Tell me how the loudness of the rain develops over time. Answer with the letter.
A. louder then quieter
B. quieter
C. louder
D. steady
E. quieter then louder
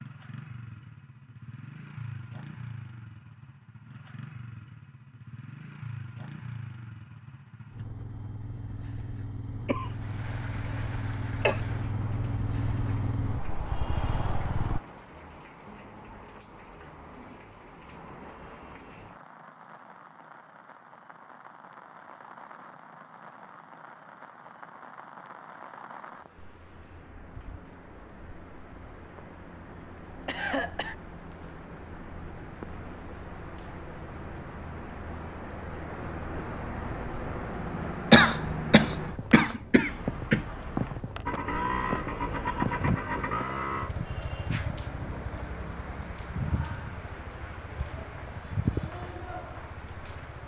C.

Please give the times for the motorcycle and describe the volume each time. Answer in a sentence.
The motorcycle can be heard from 0.0 to 14.8 s, getting louder; and from 41.2 to 50.4 s, getting quieter.